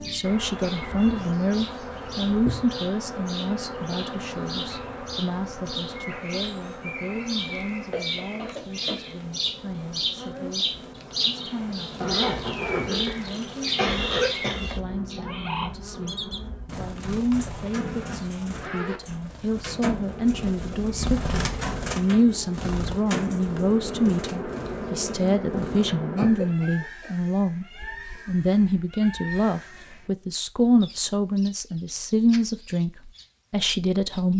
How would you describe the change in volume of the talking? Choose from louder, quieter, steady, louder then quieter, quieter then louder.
quieter then louder.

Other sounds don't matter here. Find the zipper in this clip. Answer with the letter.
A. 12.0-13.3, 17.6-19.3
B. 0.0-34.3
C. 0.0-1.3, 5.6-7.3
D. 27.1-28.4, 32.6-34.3
A.